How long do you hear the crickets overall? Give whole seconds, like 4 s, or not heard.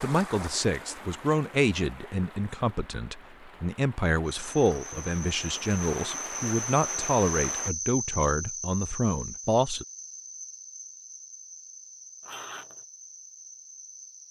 10 s.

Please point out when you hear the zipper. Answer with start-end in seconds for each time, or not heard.
12.2-12.8.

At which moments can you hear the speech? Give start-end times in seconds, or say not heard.
0.0-9.8.